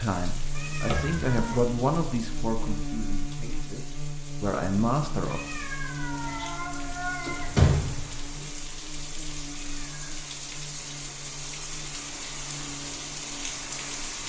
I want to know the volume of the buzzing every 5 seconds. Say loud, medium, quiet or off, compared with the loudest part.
loud, loud, medium.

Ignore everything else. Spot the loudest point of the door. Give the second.
8 s.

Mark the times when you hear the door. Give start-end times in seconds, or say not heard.
0.8-1.3, 7.2-8.4.